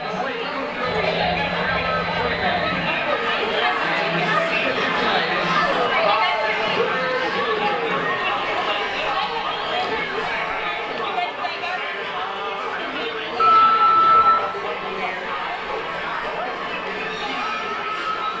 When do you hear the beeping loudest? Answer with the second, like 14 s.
14 s.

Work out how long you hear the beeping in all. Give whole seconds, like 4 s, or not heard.
3 s.